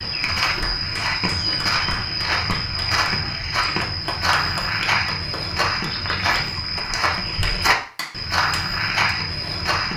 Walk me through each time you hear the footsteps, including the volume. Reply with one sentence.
You can hear the footsteps from 0.0 to 9.9 s, at a steady volume.